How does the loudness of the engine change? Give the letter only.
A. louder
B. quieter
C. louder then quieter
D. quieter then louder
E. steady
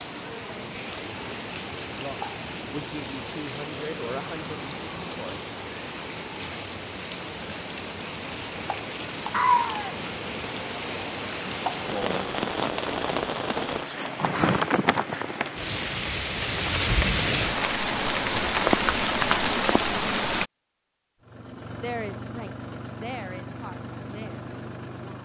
E.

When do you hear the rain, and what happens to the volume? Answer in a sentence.
You can hear the rain from 0.0 to 20.5 s, getting louder.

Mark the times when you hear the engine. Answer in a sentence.
You can hear the engine from 21.2 to 25.2 s.